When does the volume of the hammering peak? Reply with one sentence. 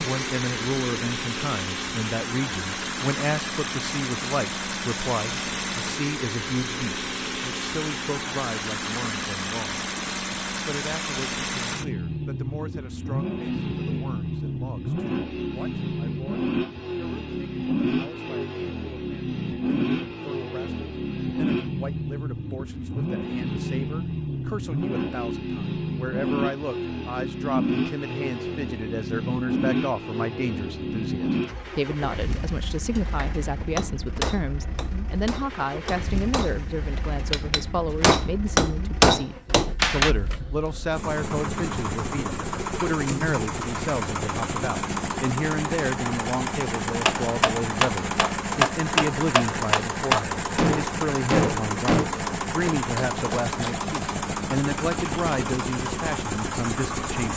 The volume of the hammering peaks at 39 seconds.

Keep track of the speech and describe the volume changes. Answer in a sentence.
The volume of the speech goes down, then up.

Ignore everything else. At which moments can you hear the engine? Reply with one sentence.
The engine can be heard from 0.0 to 57.3 s.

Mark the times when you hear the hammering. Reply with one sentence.
You can hear the hammering from 33.0 to 40.1 s and from 47.0 to 54.0 s.